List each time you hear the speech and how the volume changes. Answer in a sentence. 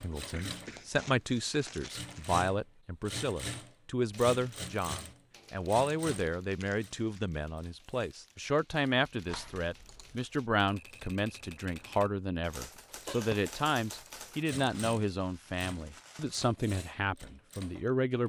You can hear the speech from 0.0 to 18.2 s, at a steady volume.